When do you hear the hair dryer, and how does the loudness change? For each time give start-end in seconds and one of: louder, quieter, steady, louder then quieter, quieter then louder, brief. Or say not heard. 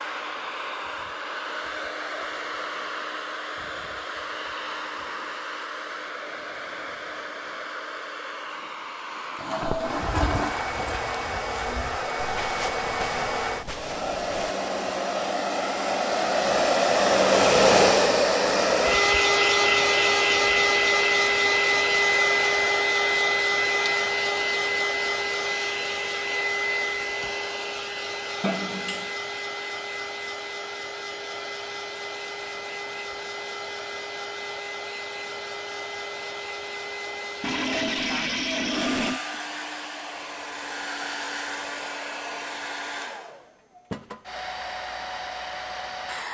0.0-46.2 louder then quieter.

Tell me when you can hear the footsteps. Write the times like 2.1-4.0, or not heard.
9.6-14.6.